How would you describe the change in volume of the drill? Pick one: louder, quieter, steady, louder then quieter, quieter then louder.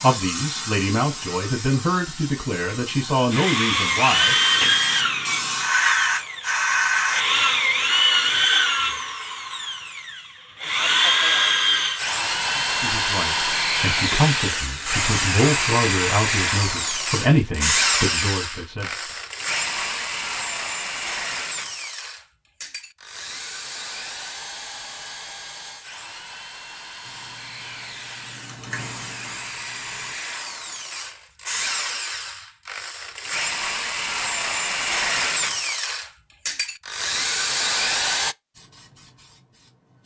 quieter then louder.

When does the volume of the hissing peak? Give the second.
6 s.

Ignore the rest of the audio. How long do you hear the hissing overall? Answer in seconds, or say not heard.
12 s.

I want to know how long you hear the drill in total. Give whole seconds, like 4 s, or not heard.
35 s.